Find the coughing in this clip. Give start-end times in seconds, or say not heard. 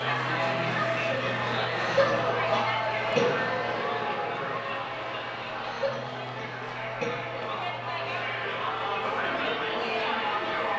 1.8-3.4, 5.6-7.2.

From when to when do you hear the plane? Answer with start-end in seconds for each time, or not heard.
0.0-10.7.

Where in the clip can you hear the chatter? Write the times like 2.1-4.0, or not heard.
0.0-10.7.